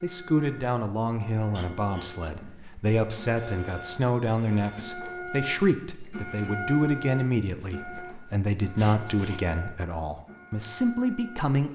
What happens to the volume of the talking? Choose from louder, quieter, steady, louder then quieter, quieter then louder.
steady.